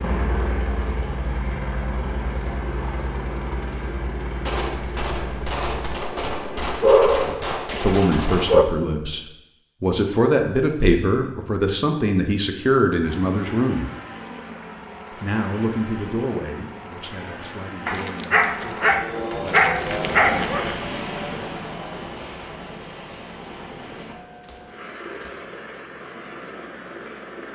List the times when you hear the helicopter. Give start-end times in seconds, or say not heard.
0.0-6.8, 13.0-27.5.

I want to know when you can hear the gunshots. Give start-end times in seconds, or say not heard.
4.4-8.6, 24.4-25.5.